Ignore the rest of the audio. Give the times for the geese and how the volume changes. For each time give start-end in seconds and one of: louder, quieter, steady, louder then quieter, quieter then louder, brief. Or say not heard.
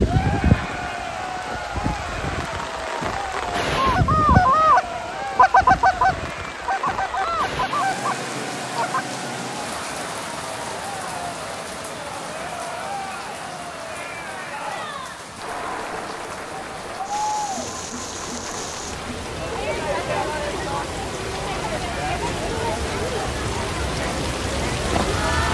3.8-9.1 quieter.